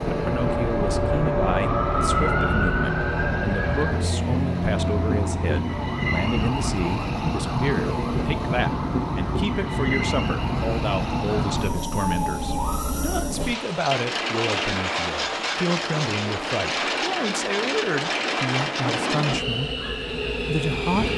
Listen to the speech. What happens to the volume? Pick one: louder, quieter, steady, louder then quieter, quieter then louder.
steady.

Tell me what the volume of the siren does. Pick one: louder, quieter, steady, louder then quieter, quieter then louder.
quieter.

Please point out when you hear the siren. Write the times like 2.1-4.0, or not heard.
0.0-13.2.